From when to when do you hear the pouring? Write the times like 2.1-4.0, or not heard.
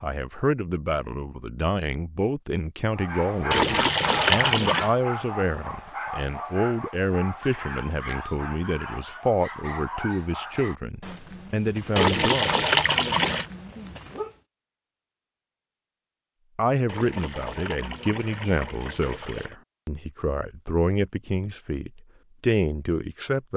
3.5-4.9, 11.9-13.4, 16.9-19.6.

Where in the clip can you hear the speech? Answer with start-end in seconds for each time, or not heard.
0.0-12.5, 16.6-23.5.